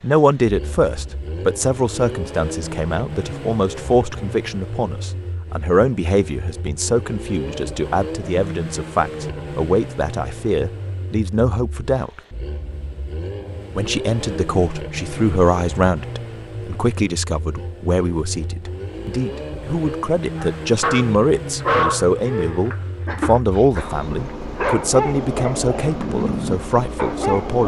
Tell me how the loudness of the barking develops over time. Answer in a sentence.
The loudness of the barking goes down, then up.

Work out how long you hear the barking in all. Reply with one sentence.
You can hear the barking for 7 seconds altogether.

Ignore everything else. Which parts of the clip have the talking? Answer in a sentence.
The talking can be heard from 0.0 to 12.2 s and from 13.8 to 27.6 s.